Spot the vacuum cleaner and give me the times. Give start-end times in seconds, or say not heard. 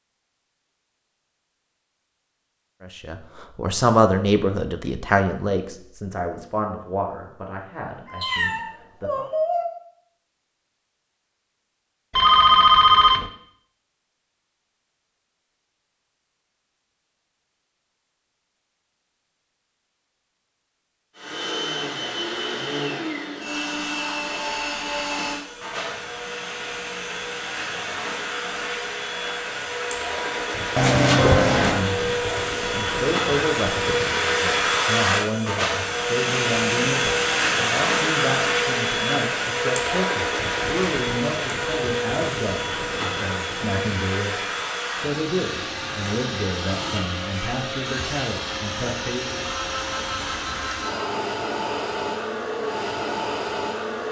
21.1-54.0.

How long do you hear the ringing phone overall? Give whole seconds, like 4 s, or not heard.
4 s.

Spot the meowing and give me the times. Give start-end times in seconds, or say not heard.
8.1-9.7.